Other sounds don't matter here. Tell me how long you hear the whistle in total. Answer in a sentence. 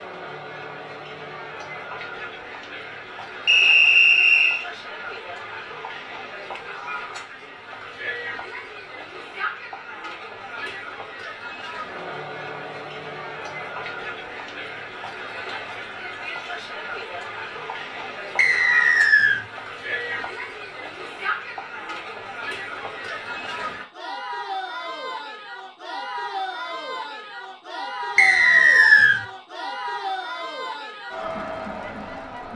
The whistle can be heard for 3 seconds in total.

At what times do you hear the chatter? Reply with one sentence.
You can hear the chatter from 0.0 to 32.5 s.